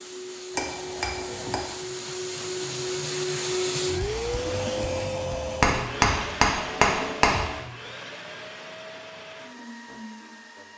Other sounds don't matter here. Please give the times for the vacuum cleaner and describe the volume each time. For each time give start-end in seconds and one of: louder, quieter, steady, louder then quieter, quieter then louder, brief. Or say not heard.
0.0-10.7 louder then quieter.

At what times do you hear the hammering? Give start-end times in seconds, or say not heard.
0.5-1.6, 5.6-7.5.